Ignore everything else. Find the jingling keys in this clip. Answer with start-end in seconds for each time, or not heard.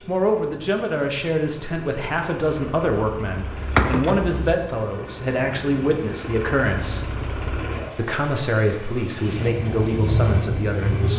3.4-4.5.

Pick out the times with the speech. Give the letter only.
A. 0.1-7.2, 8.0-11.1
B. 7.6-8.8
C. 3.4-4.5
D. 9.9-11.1
A.